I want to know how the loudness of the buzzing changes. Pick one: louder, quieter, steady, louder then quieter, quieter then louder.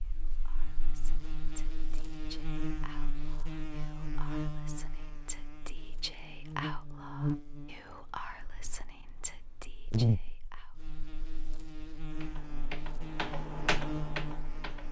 louder then quieter.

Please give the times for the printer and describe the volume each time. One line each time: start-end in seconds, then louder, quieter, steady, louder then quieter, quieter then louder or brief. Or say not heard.
not heard.